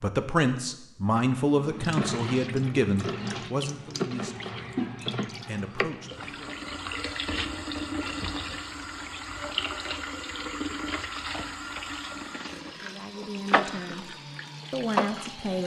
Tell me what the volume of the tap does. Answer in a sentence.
The volume of the tap stays about the same.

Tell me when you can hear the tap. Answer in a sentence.
You can hear the tap from 1.4 to 15.6 s.